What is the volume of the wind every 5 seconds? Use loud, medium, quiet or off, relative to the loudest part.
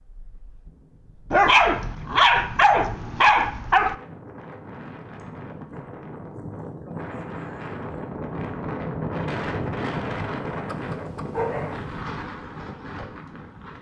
quiet, loud, loud.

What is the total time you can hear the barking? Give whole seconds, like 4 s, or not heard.
4 s.